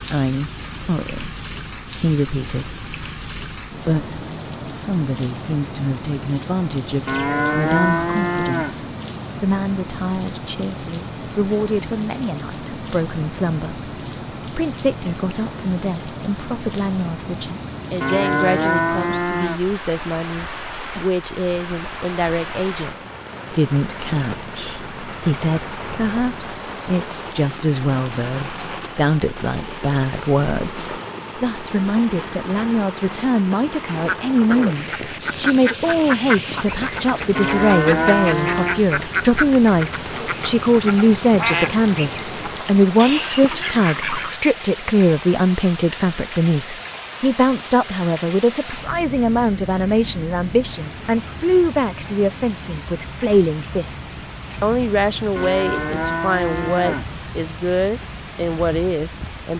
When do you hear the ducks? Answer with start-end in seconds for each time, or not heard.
33.9-44.4.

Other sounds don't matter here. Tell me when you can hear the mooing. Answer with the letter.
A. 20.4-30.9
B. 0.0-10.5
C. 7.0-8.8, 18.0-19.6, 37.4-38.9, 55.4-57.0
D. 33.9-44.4
C.